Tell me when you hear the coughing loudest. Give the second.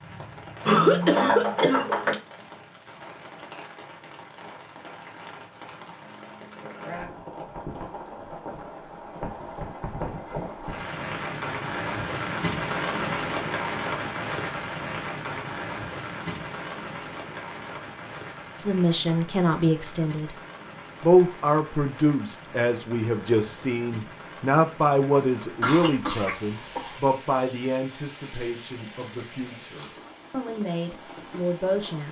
1 s.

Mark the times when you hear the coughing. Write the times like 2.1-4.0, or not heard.
0.7-2.2, 25.6-26.9.